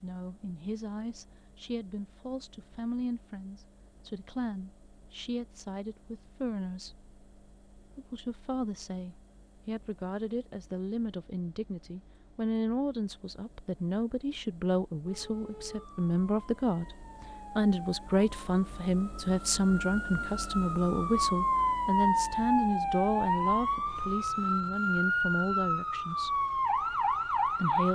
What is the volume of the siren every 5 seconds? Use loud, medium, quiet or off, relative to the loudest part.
off, off, off, quiet, loud, loud.